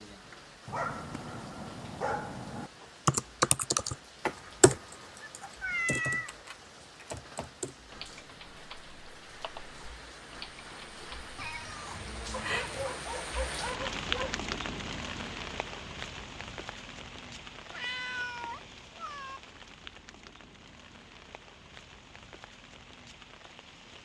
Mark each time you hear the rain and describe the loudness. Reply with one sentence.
You can hear the rain from 0.0 to 24.0 s, getting louder then quieter.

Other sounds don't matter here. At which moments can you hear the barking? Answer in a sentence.
You can hear the barking from 0.7 to 2.7 s and from 12.4 to 14.3 s.